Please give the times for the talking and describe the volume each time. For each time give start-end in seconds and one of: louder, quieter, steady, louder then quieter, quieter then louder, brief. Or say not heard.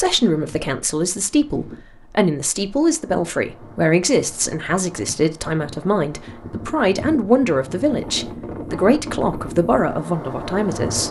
0.0-11.0 steady.